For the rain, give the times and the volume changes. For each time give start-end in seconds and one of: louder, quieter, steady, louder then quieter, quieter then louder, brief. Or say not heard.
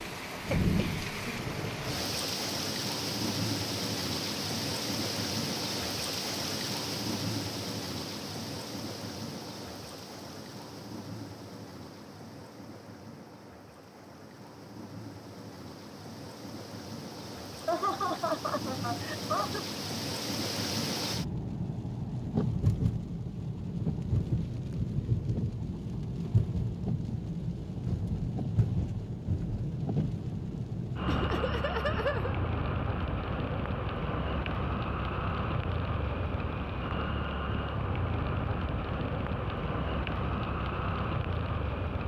0.0-42.0 quieter then louder.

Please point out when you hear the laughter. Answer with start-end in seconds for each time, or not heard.
0.5-1.4, 17.2-19.6, 31.1-32.5.